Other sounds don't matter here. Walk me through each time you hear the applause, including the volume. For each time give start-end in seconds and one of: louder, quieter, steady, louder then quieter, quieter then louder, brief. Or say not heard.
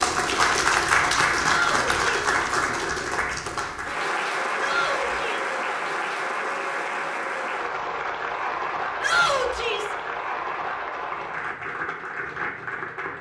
0.0-13.1 quieter.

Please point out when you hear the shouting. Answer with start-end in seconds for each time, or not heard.
1.4-2.4, 4.5-5.5, 9.0-9.9.